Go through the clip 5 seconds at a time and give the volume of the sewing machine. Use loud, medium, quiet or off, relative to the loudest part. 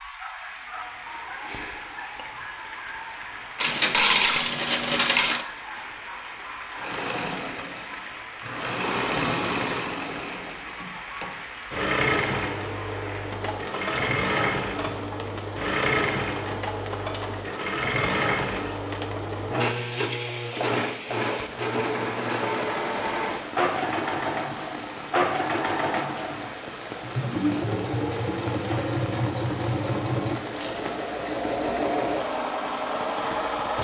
off, loud, loud, loud, loud, loud, loud.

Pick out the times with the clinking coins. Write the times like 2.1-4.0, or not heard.
3.6-5.5, 30.4-30.9.